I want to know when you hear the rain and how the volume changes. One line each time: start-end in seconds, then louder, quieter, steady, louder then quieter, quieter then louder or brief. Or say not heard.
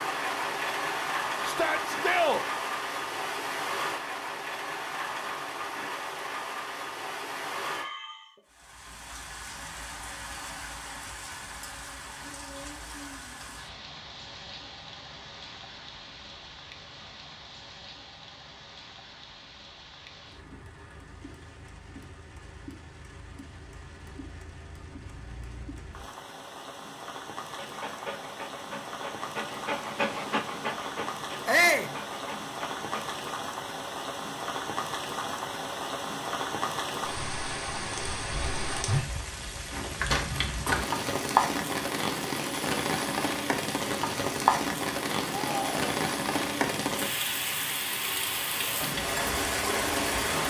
0.0-50.4 quieter then louder.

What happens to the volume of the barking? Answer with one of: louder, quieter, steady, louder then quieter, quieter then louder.
louder then quieter.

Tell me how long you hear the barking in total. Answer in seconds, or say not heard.
6 s.